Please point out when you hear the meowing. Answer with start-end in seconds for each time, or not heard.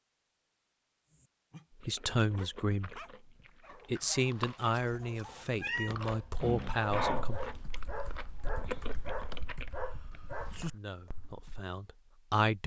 4.7-6.0.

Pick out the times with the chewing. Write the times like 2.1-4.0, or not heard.
1.8-9.8.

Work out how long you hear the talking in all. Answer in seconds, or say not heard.
7 s.